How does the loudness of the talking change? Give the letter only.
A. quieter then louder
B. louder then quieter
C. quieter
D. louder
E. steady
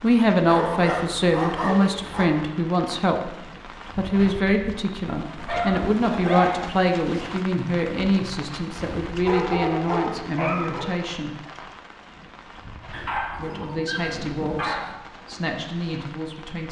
C.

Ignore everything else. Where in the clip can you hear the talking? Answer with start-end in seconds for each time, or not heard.
0.0-3.4, 4.0-11.3, 13.3-16.6.